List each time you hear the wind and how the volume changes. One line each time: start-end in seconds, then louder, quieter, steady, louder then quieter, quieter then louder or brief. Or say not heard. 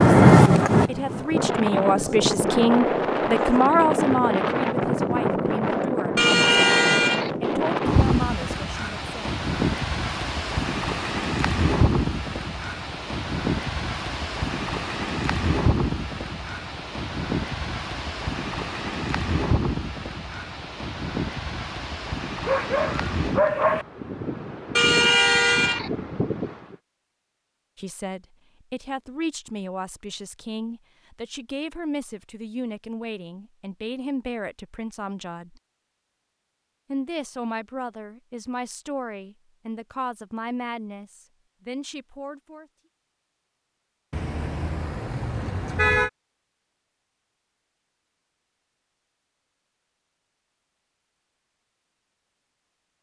0.0-26.8 quieter.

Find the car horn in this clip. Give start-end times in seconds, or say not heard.
6.2-7.3, 24.8-25.9, 44.1-46.1.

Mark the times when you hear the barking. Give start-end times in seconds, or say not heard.
22.4-23.9.